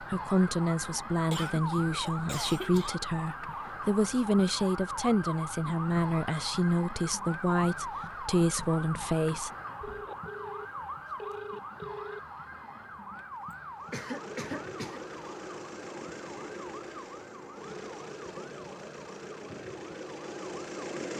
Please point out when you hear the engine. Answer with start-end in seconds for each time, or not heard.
13.8-21.1.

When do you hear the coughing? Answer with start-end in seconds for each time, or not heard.
1.3-3.0, 13.9-15.0.